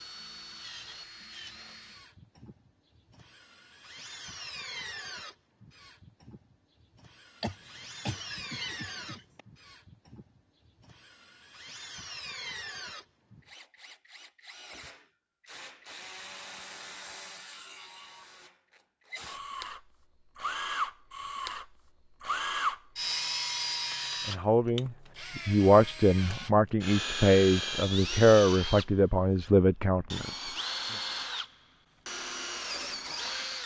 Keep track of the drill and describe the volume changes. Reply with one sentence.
The loudness of the drill goes up.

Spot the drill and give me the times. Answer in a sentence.
The drill can be heard from 0.0 to 33.6 s.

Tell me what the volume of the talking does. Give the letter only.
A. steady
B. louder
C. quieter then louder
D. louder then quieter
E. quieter
A.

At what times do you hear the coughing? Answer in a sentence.
The coughing can be heard from 7.4 to 9.4 s.